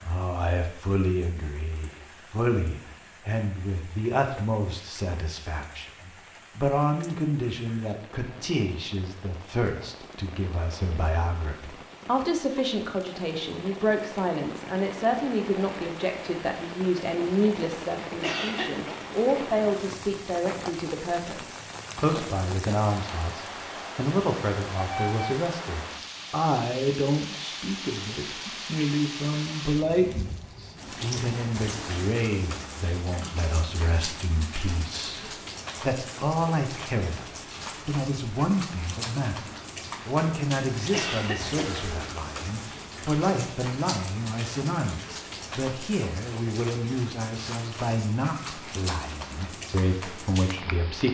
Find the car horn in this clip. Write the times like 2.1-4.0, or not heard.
24.8-25.4.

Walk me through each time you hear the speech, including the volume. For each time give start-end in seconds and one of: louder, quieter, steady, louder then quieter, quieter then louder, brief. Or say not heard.
0.0-51.0 steady.